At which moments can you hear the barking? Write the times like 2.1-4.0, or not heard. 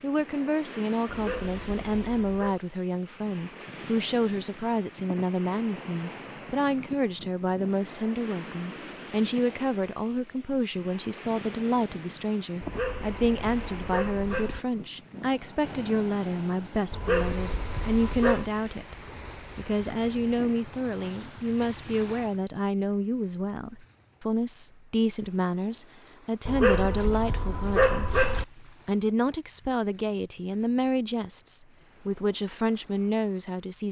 1.1-2.6, 12.6-14.6, 16.9-18.6, 26.4-28.4.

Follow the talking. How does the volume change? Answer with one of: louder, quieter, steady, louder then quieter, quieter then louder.
steady.